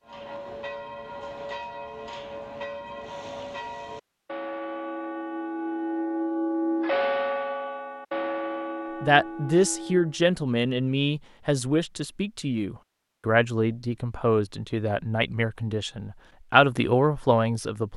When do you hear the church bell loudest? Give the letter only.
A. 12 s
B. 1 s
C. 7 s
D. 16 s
C.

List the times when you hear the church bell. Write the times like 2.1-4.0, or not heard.
0.1-10.2.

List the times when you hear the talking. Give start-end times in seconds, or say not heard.
9.0-17.9.